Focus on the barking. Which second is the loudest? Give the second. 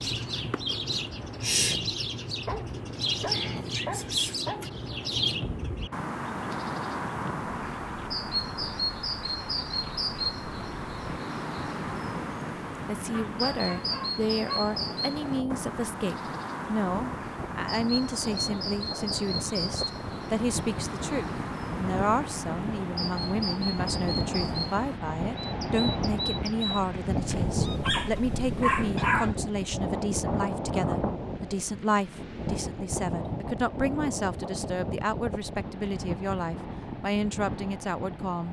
29 s.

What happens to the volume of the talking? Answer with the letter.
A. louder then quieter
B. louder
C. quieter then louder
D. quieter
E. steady
E.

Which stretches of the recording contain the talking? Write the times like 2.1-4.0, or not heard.
12.8-38.4.